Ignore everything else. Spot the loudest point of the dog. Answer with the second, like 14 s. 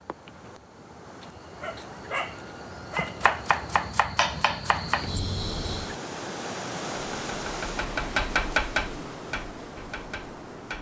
2 s.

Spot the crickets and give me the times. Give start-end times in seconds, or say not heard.
0.0-6.0.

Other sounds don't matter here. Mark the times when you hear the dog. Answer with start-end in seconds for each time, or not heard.
1.2-3.5.